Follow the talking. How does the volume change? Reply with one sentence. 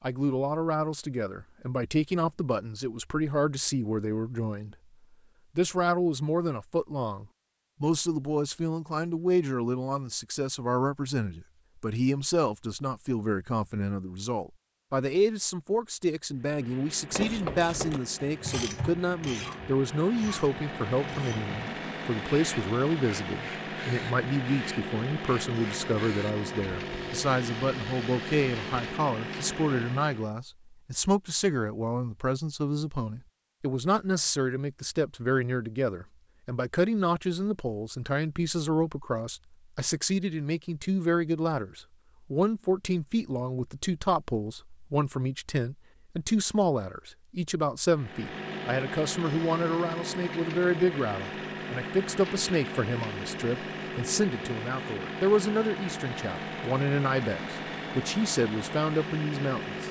The volume of the talking stays about the same.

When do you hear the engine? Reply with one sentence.
You can hear the engine from 16.3 to 30.4 s and from 47.9 to 59.8 s.